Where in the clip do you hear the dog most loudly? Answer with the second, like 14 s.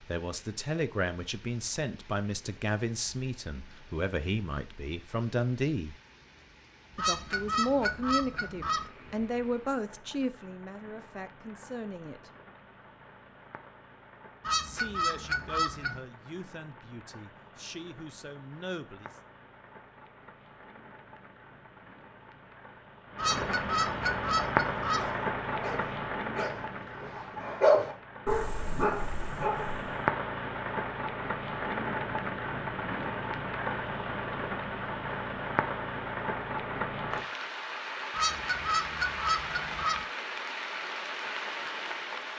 28 s.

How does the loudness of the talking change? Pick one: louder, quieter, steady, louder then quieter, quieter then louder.
quieter.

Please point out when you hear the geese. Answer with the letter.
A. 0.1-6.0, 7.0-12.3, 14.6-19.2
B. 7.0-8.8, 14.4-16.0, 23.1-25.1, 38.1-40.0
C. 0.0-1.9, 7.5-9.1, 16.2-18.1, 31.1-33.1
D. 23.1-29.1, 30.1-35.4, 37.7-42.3
B.